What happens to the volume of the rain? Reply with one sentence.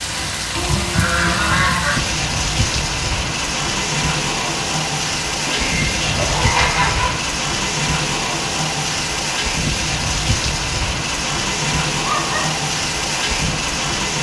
The volume of the rain stays about the same.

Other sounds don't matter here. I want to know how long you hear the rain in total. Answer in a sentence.
You can hear the rain for 14 seconds altogether.